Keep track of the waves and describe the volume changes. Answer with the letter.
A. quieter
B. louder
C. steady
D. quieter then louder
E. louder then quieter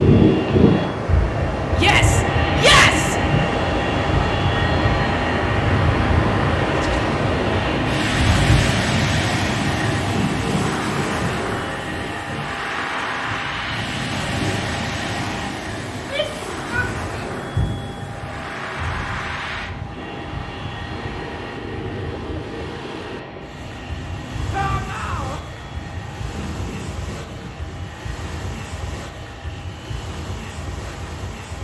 A.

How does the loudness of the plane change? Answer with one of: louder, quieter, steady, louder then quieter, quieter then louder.
quieter.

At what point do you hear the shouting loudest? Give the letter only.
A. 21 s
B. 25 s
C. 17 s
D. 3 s
D.